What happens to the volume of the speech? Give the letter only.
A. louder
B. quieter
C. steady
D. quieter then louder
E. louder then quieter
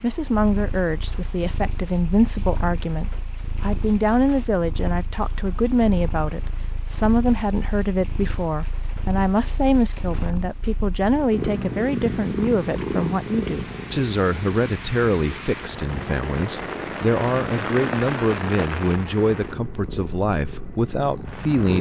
C.